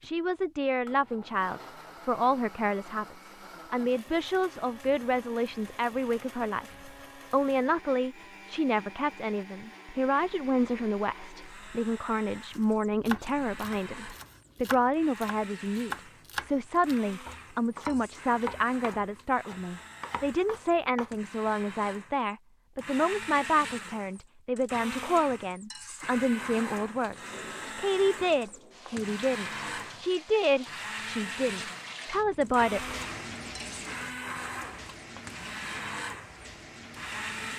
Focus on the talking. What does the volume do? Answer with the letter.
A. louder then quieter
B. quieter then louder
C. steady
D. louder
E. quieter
C.